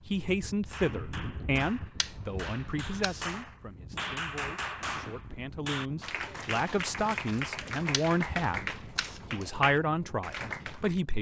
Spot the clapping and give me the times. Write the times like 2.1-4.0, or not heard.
0.7-11.0.